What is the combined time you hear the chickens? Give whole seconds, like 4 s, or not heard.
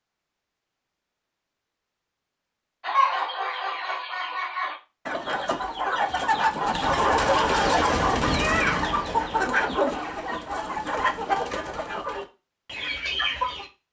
11 s.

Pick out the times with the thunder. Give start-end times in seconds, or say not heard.
7.9-9.3.